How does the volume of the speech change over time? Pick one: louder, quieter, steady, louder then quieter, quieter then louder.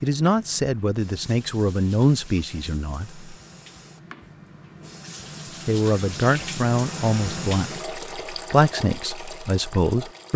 steady.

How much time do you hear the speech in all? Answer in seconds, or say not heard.
8 s.